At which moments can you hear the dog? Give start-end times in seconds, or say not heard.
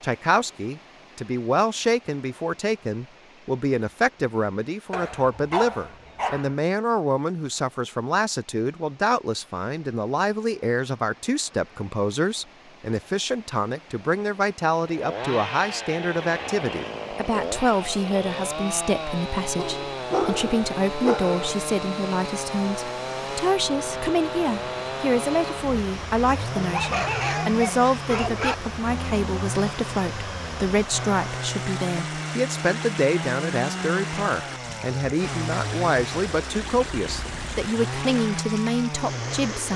4.9-6.5, 19.6-21.6, 26.6-28.6.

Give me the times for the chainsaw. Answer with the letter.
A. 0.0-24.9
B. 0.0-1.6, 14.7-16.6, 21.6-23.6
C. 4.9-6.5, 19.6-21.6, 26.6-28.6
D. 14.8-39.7
D.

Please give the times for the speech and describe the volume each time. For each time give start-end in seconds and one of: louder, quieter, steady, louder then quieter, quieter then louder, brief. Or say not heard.
0.0-39.7 steady.